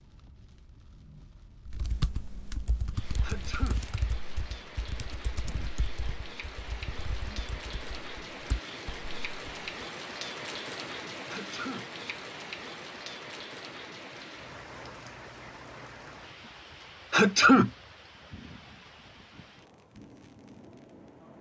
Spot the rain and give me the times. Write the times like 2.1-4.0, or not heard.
0.0-21.3.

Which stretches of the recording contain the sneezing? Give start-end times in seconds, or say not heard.
3.2-3.8, 11.2-11.8, 17.1-17.7.